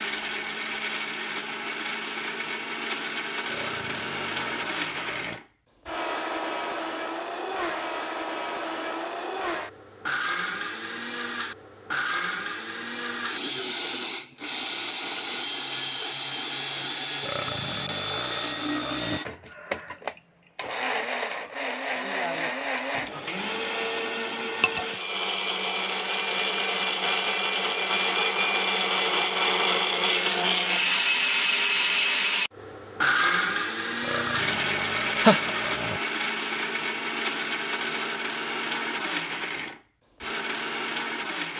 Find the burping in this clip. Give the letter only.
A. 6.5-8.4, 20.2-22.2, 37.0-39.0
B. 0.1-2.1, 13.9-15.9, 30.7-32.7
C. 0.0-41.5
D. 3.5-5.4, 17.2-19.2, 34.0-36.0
D.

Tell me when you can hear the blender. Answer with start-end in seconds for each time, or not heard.
0.0-41.5.